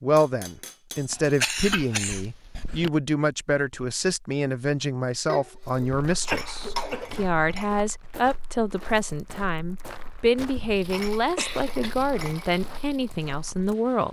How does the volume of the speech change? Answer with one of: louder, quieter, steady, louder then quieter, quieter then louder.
steady.